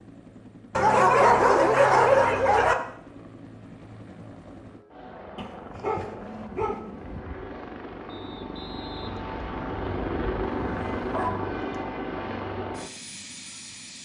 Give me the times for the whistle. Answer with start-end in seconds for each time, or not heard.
8.1-10.1.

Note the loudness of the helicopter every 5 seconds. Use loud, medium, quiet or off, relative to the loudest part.
quiet, medium, loud.